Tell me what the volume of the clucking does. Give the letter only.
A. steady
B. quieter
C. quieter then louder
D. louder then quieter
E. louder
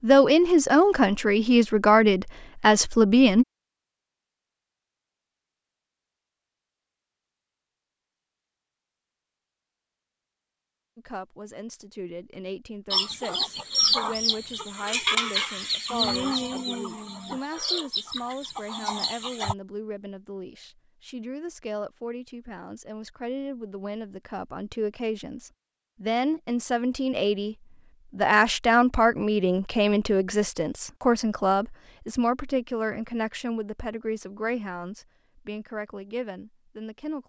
B.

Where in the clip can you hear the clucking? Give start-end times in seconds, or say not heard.
12.9-19.6.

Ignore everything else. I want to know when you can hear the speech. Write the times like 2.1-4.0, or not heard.
0.0-3.5, 10.9-37.2.